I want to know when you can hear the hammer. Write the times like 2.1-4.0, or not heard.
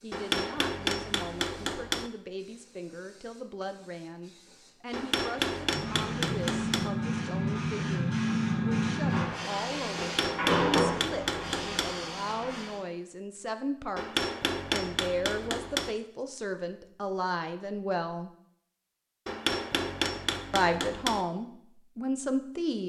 0.1-2.1, 4.9-6.9, 9.9-11.9, 13.9-15.9, 19.2-21.2.